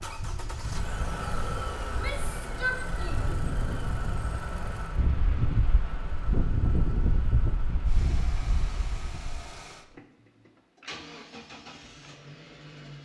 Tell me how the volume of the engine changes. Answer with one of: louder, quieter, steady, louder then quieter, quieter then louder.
quieter.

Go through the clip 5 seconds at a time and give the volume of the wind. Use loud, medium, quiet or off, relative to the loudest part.
medium, loud, off.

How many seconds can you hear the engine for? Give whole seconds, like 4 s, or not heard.
13 s.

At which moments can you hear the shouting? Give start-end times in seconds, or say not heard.
1.9-3.4.